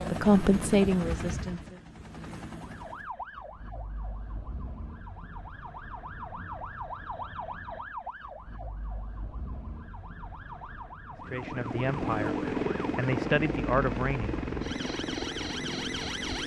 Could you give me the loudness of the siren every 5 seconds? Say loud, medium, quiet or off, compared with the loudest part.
medium, medium, medium, loud.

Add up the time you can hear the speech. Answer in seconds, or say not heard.
5 s.